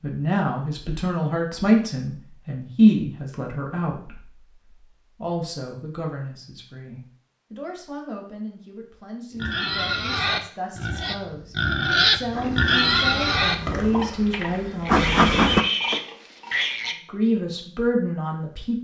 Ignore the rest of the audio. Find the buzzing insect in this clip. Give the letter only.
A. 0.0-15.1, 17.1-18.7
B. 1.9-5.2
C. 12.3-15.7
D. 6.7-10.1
C.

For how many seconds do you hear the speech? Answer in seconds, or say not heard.
17 s.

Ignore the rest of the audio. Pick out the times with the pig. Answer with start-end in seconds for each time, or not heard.
9.3-16.9.